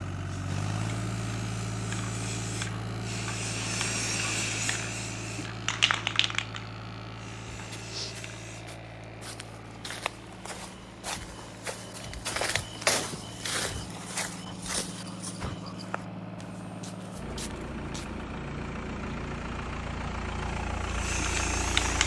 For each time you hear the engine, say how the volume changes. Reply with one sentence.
The engine can be heard from 0.0 to 22.0 s, getting quieter then louder.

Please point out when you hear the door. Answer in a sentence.
You can't hear the door here.